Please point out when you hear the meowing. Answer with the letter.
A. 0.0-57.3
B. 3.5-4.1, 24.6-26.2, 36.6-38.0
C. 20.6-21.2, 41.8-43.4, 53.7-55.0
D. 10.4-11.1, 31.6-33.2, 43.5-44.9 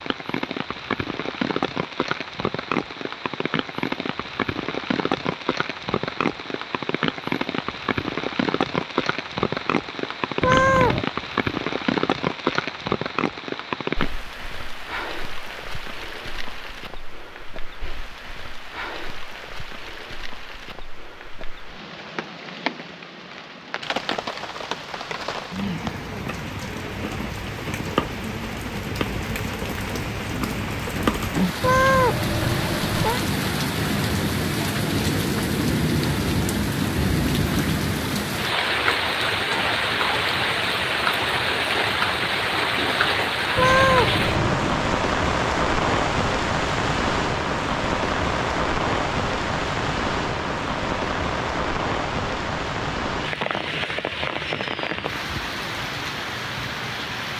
D.